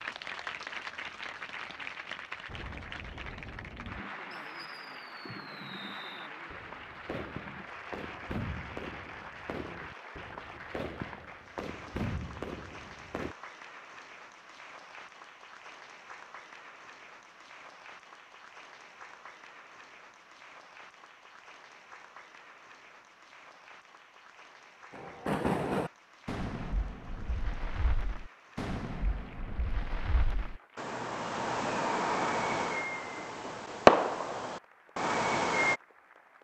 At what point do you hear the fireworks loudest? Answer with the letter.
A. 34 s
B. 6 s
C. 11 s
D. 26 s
A.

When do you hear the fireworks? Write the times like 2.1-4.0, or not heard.
2.5-13.3, 24.9-35.8.